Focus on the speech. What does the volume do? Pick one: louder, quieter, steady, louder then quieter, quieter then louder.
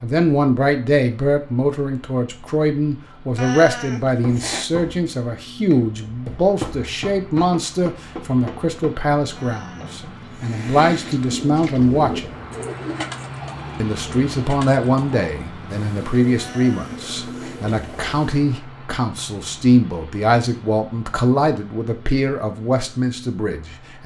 steady.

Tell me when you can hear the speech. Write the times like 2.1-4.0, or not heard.
0.0-12.3, 13.8-24.0.